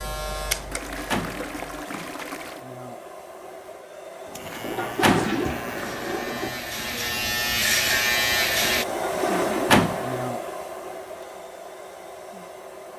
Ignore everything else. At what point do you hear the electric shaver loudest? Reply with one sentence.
The volume of the electric shaver peaks at 8 seconds.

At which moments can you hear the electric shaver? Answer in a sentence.
The electric shaver can be heard from 0.0 to 1.9 s and from 4.2 to 8.8 s.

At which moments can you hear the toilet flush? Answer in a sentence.
The toilet flush can be heard from 0.7 to 2.6 s, from 4.6 to 6.5 s and from 8.8 to 10.3 s.